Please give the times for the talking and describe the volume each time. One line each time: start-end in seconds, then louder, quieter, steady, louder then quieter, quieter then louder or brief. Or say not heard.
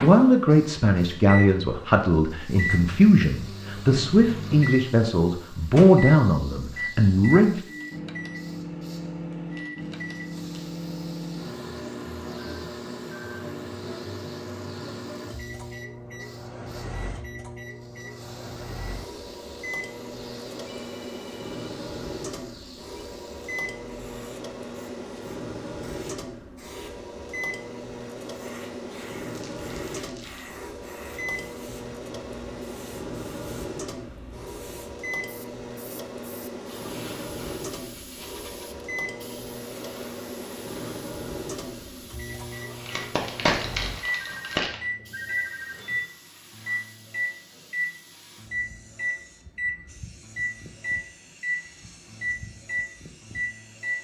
0.0-7.6 steady.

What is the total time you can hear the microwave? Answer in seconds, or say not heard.
54 s.